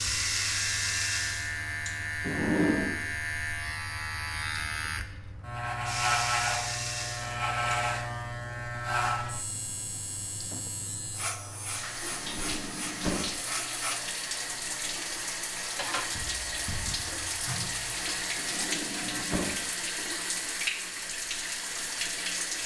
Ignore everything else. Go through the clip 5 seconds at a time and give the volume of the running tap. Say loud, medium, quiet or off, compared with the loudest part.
loud, medium, medium, loud, loud.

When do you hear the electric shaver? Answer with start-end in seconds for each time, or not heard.
0.0-19.2.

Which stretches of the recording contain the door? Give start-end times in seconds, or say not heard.
2.2-2.9, 12.1-13.2, 18.4-19.6.